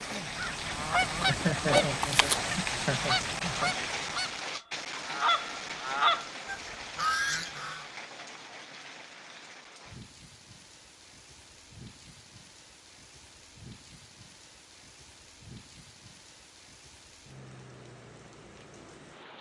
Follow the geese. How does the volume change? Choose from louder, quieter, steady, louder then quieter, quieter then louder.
quieter then louder.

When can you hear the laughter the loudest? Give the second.
2 s.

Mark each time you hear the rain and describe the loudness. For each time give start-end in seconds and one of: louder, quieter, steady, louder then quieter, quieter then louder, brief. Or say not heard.
0.0-19.3 quieter.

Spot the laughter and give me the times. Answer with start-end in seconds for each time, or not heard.
1.2-3.8.